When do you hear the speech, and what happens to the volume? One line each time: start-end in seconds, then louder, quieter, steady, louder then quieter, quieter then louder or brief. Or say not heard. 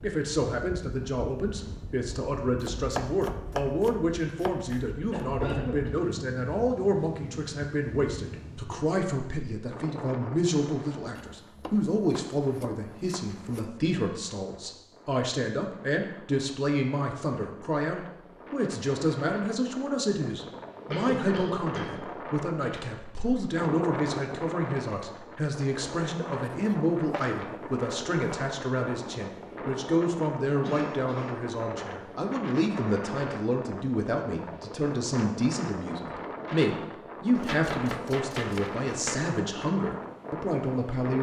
0.0-41.1 steady.